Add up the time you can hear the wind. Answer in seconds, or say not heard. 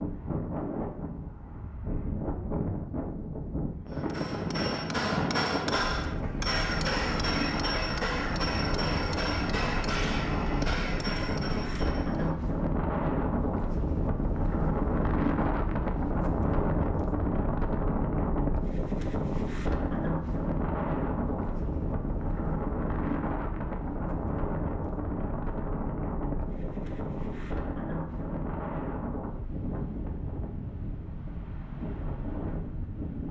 33 s.